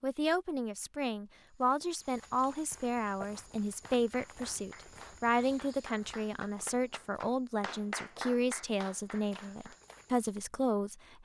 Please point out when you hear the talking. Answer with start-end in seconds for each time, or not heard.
0.0-11.1.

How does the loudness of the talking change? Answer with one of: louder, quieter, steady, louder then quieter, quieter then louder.
steady.